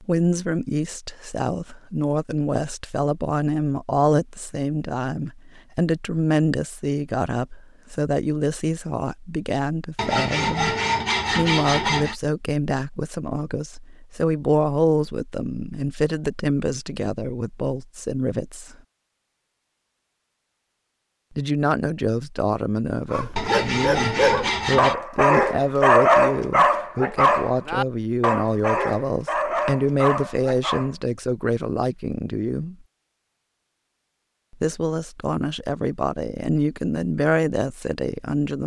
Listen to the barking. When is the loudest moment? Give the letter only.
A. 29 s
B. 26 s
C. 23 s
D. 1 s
B.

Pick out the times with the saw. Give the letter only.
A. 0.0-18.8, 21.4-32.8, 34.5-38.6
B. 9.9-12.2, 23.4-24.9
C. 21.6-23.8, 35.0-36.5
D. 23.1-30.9
B.